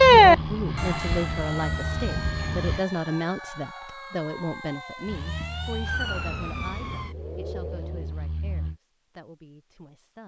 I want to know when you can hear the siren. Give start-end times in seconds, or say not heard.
0.0-8.1.